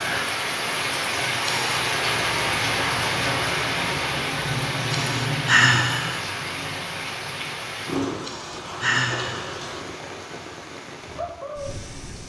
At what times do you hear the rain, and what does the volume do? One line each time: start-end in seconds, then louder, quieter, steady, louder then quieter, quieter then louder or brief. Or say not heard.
0.0-12.2 quieter.